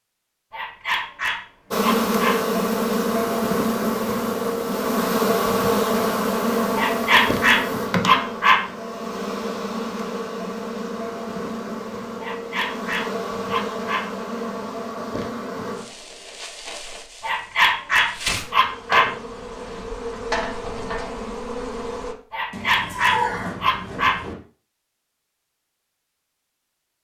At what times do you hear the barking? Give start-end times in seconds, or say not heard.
0.5-2.4, 6.8-8.7, 12.2-14.1, 17.2-19.1, 22.3-24.2.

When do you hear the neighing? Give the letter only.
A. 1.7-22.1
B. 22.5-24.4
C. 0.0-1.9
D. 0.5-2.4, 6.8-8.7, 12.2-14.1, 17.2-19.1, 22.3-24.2
B.